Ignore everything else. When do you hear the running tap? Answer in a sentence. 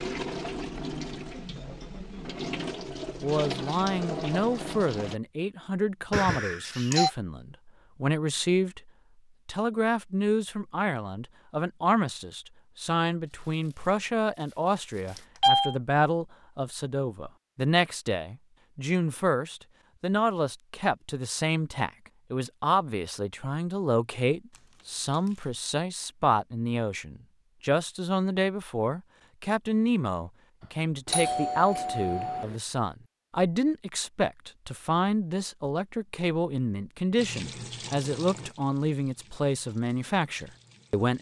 The running tap can be heard from 0.0 to 5.2 s and from 37.1 to 41.1 s.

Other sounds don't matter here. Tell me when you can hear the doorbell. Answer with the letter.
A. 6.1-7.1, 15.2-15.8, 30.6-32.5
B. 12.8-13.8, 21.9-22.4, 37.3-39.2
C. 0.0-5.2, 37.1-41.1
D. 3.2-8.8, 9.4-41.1
A.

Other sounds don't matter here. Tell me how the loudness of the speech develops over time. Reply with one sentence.
The volume of the speech stays about the same.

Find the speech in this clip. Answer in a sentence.
You can hear the speech from 3.2 to 8.8 s and from 9.4 to 41.1 s.